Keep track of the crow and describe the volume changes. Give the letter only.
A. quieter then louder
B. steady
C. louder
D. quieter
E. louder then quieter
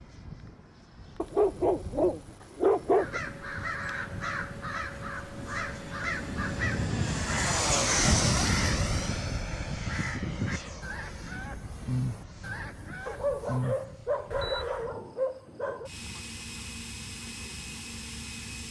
B.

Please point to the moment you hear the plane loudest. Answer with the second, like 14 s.
8 s.